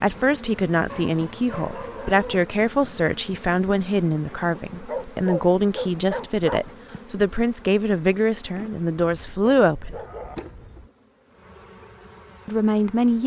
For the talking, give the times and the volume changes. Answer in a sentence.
The talking can be heard from 0.0 to 10.0 s, at a steady volume; and briefly from 12.4 to 13.2 s.